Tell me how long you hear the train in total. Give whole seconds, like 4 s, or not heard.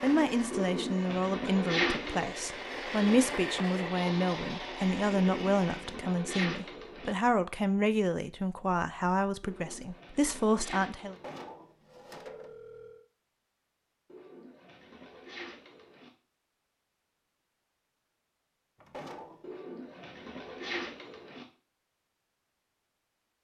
6 s.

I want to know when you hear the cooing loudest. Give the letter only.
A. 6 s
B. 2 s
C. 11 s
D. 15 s
B.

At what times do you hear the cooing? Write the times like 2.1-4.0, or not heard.
0.5-2.3, 5.2-7.2, 9.4-11.4, 14.1-16.1, 19.4-21.4.